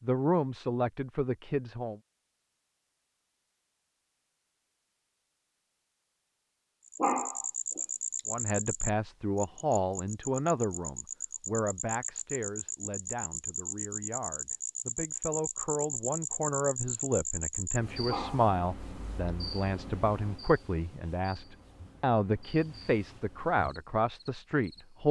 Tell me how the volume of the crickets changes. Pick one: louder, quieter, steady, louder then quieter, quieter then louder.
quieter.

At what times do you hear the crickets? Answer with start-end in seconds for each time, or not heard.
6.8-25.0.